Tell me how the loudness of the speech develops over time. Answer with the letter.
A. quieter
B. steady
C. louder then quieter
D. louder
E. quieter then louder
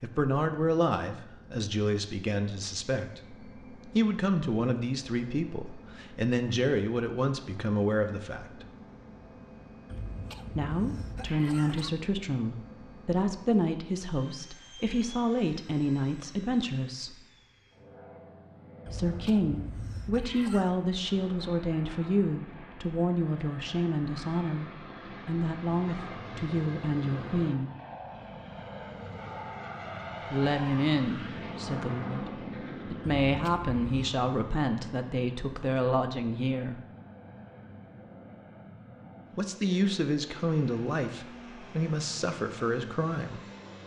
B.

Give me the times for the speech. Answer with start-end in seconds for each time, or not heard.
0.0-8.7, 10.6-17.1, 18.9-27.7, 30.3-36.8, 39.4-43.4.